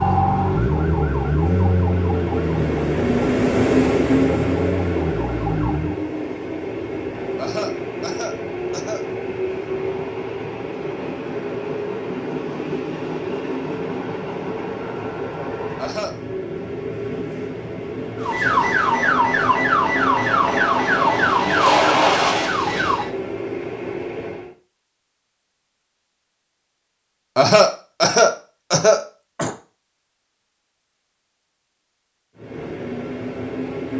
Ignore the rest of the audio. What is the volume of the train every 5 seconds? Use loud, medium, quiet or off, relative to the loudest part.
loud, medium, medium, medium, medium, off, medium.